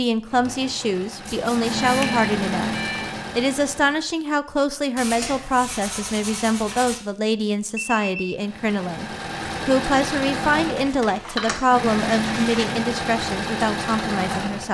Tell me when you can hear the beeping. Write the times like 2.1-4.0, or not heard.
1.8-3.1, 7.8-8.2.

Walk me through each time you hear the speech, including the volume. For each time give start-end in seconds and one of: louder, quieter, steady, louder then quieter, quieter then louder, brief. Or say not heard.
0.0-14.6 steady.